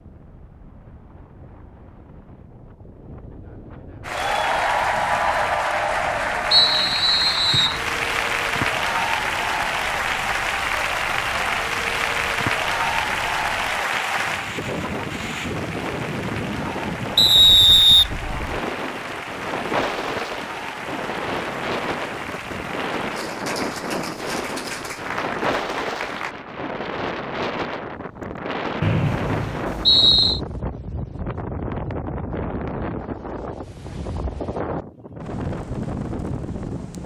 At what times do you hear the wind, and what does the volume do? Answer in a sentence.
You can hear the wind from 0.0 to 37.0 s, getting louder.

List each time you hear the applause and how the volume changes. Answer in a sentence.
The applause can be heard from 4.0 to 26.4 s, getting quieter.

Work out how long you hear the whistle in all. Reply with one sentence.
You can hear the whistle for 4 seconds altogether.